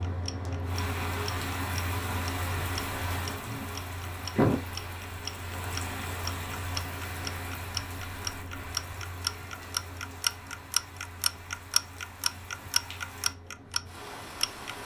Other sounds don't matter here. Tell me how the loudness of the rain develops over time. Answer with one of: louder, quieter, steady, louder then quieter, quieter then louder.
quieter.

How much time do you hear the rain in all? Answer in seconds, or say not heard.
15 s.